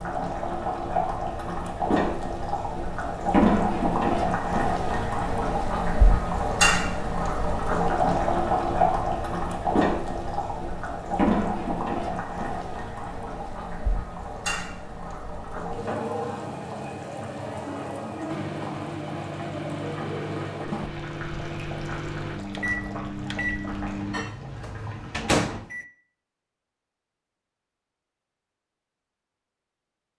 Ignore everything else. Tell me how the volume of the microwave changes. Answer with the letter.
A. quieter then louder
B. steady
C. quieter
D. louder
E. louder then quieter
D.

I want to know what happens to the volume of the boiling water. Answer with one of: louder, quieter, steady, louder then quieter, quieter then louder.
quieter.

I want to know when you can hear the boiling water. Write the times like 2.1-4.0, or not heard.
0.0-25.6.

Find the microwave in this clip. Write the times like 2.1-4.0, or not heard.
18.2-25.9.